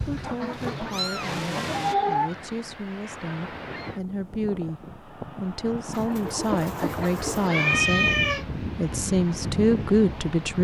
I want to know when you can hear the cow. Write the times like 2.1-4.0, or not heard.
not heard.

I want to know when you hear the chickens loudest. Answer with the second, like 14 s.
2 s.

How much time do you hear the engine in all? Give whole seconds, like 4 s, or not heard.
2 s.